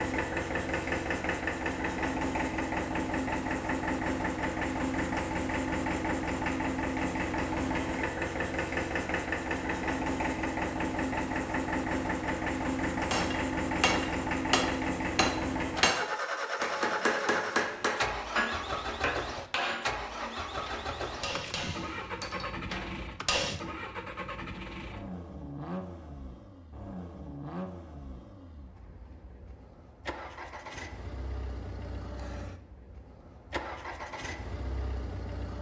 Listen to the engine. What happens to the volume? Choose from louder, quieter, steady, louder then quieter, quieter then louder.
quieter.